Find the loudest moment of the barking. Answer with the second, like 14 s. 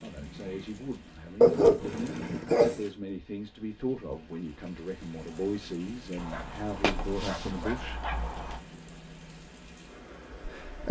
2 s.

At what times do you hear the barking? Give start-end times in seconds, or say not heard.
1.4-2.9, 6.2-8.6.